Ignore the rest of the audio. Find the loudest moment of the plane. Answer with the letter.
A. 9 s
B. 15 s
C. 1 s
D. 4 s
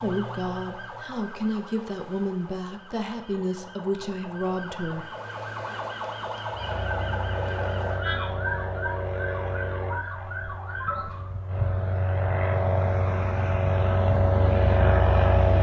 B.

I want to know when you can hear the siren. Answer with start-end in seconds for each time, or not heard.
0.0-11.2.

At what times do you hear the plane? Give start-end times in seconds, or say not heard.
6.5-15.5.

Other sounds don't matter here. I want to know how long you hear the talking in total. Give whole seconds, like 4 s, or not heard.
5 s.